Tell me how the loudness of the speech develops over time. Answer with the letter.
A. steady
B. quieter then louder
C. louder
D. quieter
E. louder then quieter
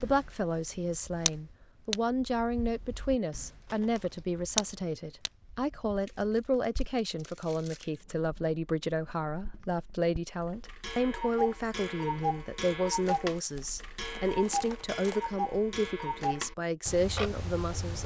A.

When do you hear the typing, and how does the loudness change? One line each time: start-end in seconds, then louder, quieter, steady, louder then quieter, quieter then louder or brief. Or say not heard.
not heard.